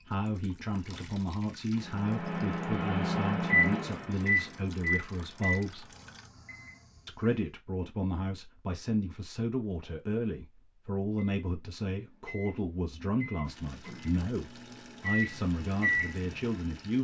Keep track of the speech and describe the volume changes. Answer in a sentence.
The loudness of the speech stays about the same.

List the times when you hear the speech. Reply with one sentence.
You can hear the speech from 0.0 to 5.9 s and from 7.0 to 16.9 s.